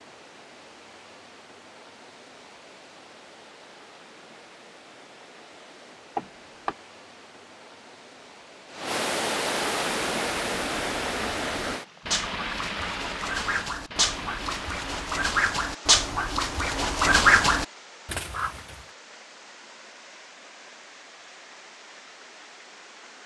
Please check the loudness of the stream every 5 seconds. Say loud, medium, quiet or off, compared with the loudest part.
quiet, loud, loud, quiet, quiet.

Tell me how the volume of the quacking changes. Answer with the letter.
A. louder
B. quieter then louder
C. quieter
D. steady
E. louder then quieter
A.